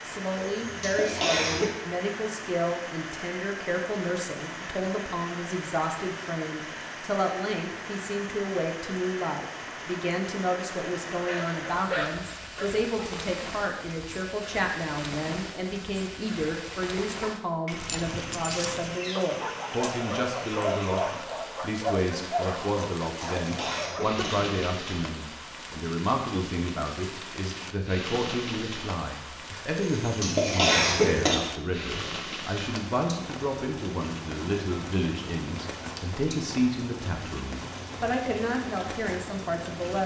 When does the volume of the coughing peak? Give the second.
31 s.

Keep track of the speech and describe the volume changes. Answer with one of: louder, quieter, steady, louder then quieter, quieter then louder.
steady.